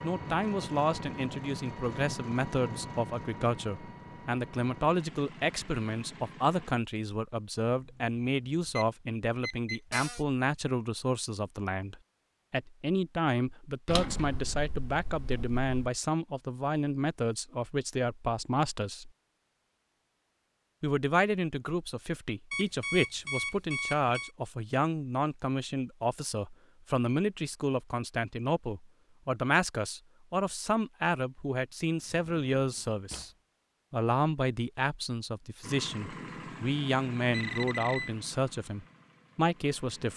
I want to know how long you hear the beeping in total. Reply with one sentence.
The beeping can be heard for 5 seconds in total.